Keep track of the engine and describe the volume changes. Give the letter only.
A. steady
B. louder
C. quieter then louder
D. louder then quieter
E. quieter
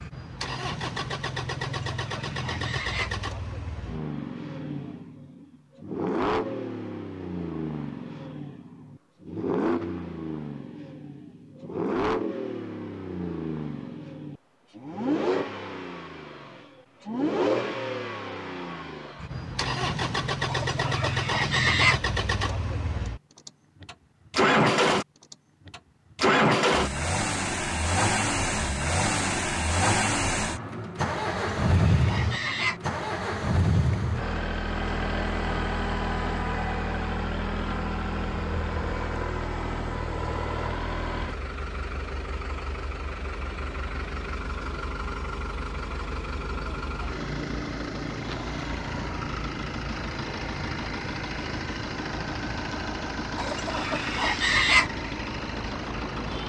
D.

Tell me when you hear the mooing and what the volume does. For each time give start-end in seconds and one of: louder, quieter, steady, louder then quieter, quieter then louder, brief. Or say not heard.
not heard.